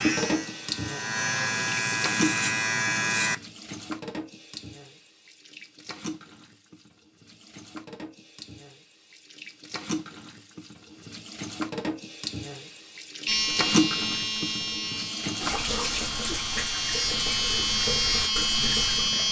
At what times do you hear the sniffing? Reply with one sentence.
You can't hear the sniffing here.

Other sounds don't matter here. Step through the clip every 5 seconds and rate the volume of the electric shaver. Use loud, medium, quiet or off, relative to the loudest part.
loud, off, loud, loud.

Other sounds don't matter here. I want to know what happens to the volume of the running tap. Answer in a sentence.
The volume of the running tap goes down, then up.